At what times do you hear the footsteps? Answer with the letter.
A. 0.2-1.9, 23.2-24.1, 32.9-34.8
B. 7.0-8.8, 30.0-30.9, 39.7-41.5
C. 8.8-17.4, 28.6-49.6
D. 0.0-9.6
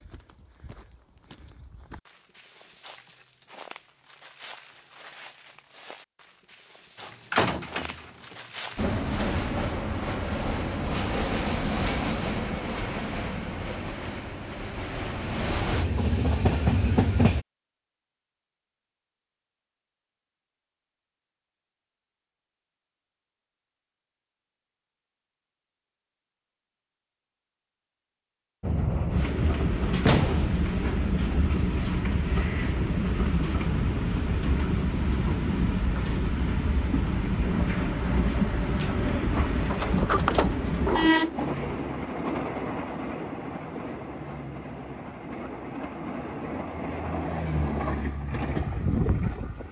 D.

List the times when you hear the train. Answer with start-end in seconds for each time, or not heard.
8.8-17.4, 28.6-49.6.